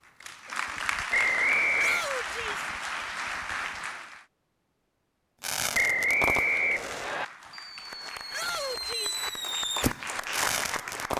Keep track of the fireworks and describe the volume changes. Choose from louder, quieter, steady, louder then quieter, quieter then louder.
quieter then louder.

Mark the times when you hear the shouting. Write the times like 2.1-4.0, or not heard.
1.8-2.6, 8.3-9.2.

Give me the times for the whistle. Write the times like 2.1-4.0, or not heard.
1.1-2.0, 5.7-7.2.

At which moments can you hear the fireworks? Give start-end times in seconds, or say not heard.
5.4-11.1.